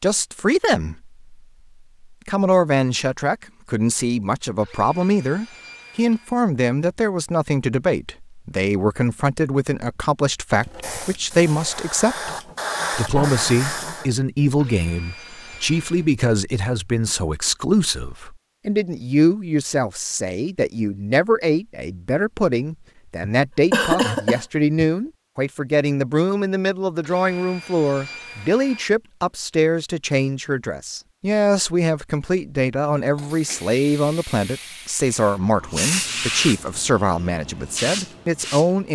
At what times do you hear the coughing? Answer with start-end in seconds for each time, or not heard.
23.2-24.9.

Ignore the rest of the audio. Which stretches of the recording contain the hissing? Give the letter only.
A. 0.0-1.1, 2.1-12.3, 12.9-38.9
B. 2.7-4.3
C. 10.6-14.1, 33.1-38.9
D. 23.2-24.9
C.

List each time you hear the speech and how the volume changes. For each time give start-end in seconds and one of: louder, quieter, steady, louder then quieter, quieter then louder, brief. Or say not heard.
0.0-1.1 brief
2.1-12.3 steady
12.9-38.9 steady.